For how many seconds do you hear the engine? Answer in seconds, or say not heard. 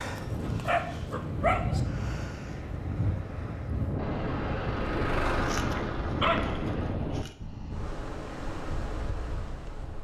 3 s.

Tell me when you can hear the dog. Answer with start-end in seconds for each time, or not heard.
0.1-1.8, 5.3-7.3.